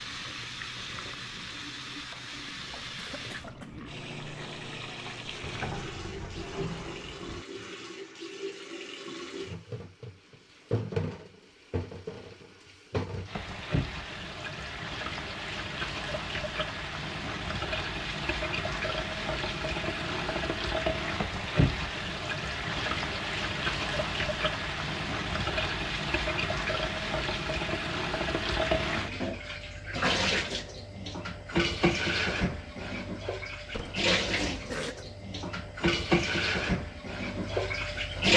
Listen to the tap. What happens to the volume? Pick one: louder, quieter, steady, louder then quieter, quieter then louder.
louder.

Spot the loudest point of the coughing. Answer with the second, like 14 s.
35 s.